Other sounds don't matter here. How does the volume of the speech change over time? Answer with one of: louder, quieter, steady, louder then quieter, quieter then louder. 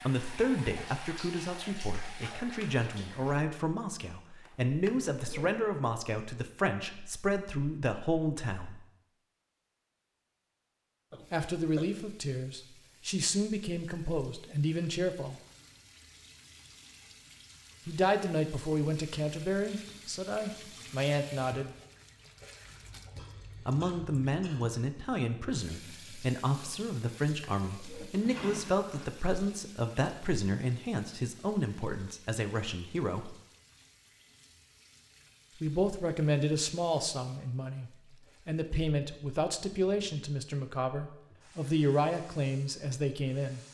steady.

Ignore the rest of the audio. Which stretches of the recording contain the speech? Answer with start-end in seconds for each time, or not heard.
0.0-8.8, 11.3-15.3, 17.9-21.8, 23.6-33.4, 35.6-43.6.